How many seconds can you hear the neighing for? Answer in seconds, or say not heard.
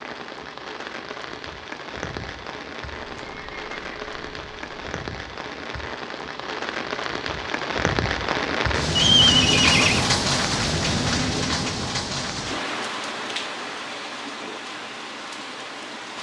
3 s.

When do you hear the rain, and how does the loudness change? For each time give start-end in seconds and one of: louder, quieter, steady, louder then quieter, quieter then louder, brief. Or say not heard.
0.0-16.1 louder then quieter.